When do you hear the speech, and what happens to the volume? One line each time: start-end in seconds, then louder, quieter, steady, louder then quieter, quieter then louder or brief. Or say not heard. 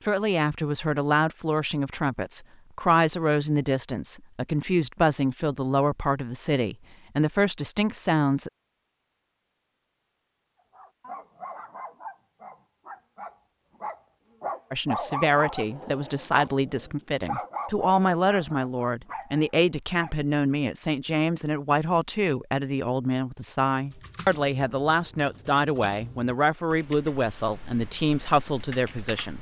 0.1-8.5 steady
14.7-29.3 steady.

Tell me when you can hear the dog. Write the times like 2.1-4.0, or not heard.
10.7-20.1.